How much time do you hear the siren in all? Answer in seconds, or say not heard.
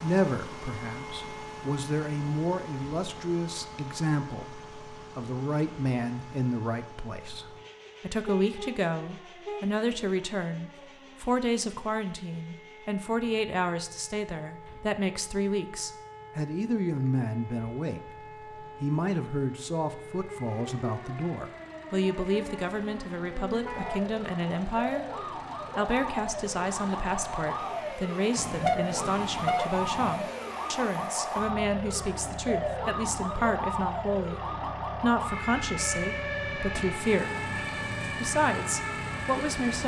40 s.